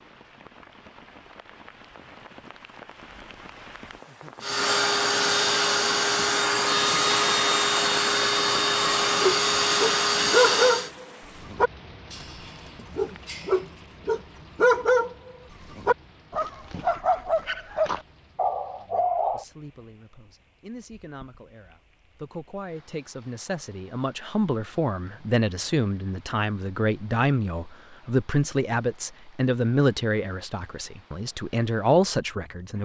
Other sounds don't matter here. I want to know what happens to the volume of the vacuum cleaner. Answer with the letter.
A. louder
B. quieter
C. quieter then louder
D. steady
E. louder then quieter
D.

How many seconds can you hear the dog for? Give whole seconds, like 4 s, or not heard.
10 s.